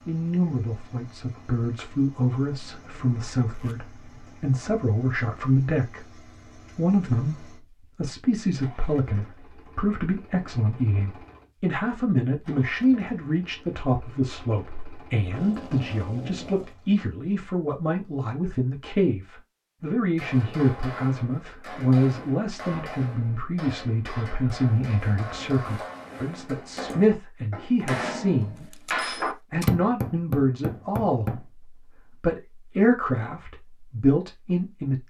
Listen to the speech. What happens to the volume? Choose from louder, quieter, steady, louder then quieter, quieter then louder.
steady.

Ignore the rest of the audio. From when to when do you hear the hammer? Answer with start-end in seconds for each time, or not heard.
19.9-31.4.